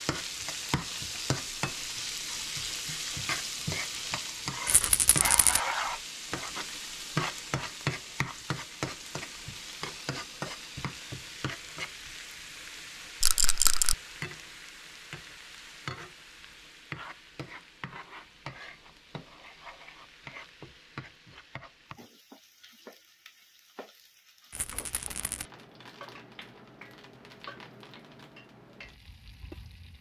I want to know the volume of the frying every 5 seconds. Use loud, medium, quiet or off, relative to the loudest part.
loud, loud, medium, medium, quiet, quiet.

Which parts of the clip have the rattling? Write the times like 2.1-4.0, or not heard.
4.7-5.6, 13.2-13.9, 24.5-25.4.